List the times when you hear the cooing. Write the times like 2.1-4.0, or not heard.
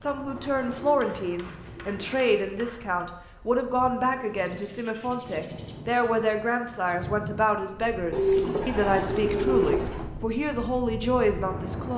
0.2-2.2, 4.4-6.0, 8.1-10.1.